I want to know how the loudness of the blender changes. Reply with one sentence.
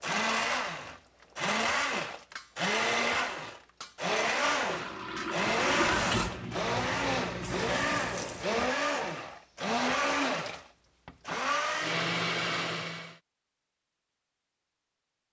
The volume of the blender stays about the same.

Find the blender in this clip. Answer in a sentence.
The blender can be heard from 0.0 to 13.2 s.